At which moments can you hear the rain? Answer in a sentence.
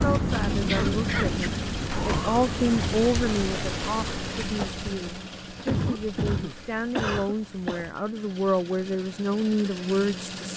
The rain can be heard from 0.0 to 8.0 s.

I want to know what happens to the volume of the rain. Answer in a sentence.
The volume of the rain goes down.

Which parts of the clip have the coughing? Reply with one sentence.
The coughing can be heard from 0.7 to 1.4 s and from 5.7 to 7.8 s.